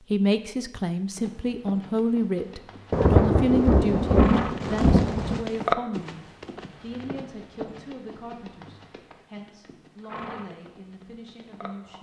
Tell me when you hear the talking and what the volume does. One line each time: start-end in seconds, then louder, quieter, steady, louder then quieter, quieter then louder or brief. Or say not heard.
0.0-11.9 quieter.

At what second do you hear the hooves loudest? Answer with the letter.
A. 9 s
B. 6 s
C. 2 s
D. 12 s
B.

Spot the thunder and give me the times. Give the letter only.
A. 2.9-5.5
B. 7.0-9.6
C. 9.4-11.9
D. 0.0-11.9
A.